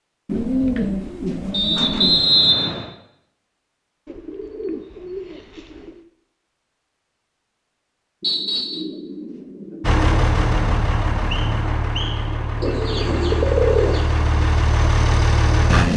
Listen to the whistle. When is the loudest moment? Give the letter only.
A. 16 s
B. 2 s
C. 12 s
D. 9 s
B.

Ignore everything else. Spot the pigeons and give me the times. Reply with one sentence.
You can hear the pigeons from 0.2 to 2.2 s, from 4.0 to 6.0 s, from 8.2 to 10.2 s and from 12.6 to 14.1 s.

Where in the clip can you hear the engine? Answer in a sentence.
You can hear the engine from 9.8 to 15.9 s.